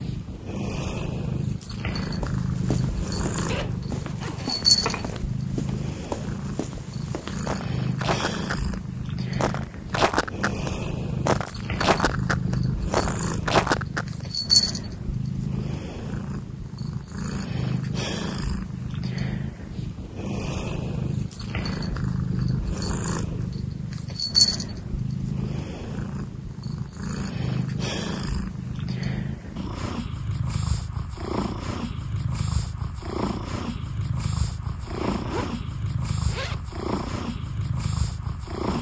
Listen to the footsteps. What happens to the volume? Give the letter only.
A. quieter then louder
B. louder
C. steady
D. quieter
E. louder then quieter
B.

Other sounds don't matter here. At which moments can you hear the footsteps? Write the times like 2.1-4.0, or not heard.
2.2-8.8, 9.3-14.1.